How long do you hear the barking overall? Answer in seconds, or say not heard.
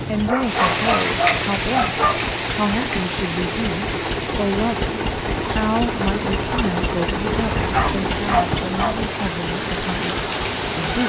4 s.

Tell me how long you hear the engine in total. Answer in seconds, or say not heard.
11 s.